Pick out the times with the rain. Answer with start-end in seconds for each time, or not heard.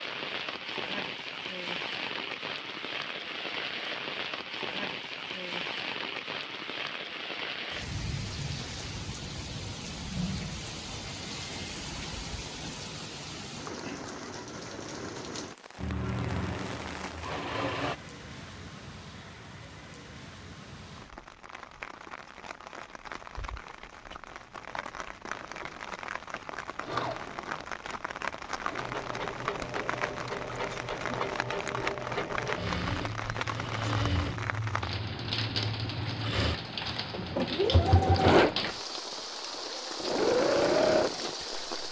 0.0-41.8.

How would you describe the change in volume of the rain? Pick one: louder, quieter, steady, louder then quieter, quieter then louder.
quieter then louder.